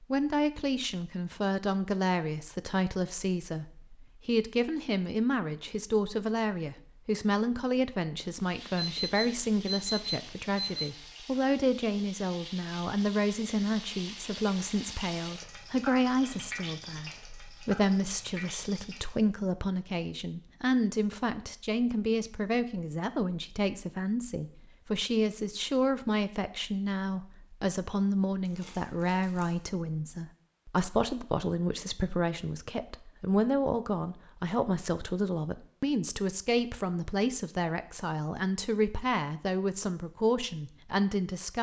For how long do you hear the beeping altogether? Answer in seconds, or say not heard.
2 s.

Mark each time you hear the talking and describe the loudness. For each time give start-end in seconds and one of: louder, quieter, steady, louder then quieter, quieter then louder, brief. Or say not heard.
0.0-41.5 steady.